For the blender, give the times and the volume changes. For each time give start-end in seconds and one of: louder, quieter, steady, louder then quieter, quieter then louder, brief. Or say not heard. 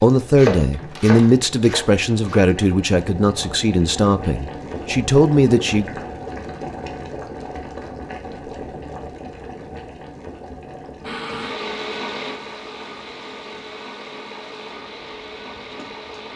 11.0-16.3 quieter.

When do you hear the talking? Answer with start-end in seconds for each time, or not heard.
0.0-5.9.